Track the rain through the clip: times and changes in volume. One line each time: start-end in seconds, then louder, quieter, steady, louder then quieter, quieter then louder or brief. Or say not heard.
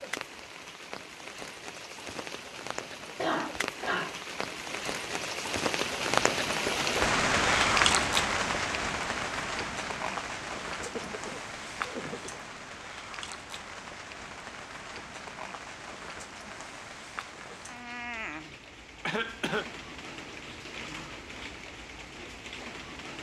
0.0-23.1 louder then quieter.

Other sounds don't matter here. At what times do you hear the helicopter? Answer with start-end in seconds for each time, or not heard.
not heard.